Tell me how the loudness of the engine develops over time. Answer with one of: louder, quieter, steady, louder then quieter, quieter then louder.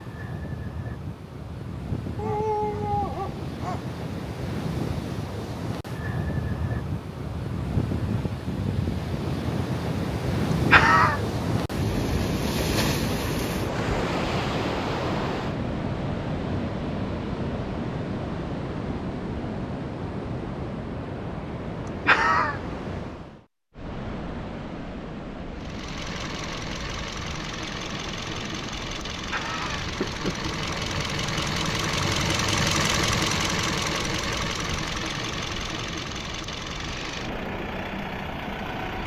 louder then quieter.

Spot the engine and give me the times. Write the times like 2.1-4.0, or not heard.
25.5-39.0.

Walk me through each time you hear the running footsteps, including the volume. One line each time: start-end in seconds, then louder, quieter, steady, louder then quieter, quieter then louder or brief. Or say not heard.
not heard.